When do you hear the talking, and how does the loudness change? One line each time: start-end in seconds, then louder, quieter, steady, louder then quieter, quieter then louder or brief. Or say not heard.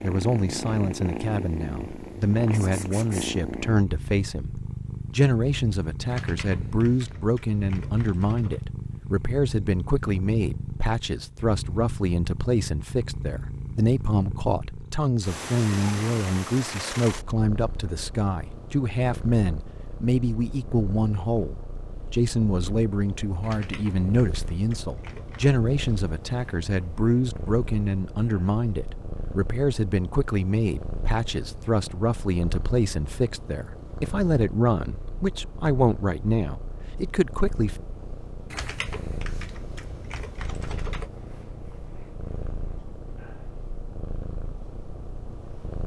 0.0-37.8 steady.